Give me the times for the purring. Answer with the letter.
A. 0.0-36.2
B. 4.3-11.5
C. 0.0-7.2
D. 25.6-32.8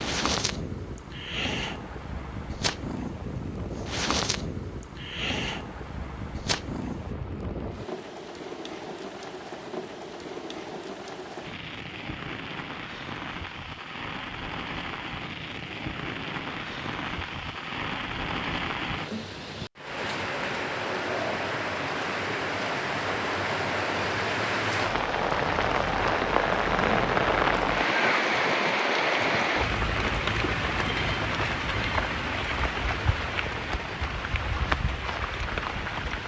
C.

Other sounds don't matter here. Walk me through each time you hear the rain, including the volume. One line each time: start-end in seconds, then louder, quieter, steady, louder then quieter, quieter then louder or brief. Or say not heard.
0.0-36.2 louder.